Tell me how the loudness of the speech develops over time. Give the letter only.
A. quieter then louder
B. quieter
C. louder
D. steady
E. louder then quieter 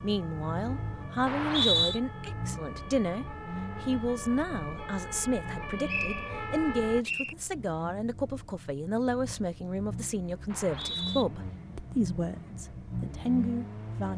D.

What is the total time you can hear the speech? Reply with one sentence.
You can hear the speech for 14 seconds altogether.